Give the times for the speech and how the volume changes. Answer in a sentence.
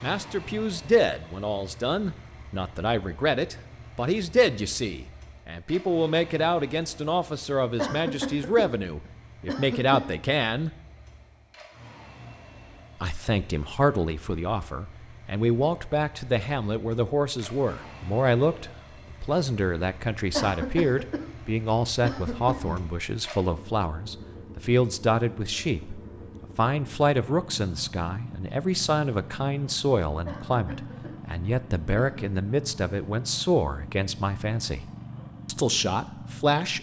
You can hear the speech from 0.0 to 10.7 s, at a steady volume; from 13.0 to 34.9 s, at a steady volume; and briefly from 35.5 to 36.7 s.